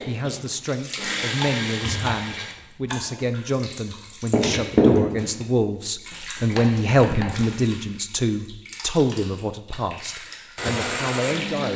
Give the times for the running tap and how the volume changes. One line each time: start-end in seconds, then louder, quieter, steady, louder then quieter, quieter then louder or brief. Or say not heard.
0.1-11.7 louder then quieter.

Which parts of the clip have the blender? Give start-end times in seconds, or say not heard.
0.0-2.5, 10.6-11.7.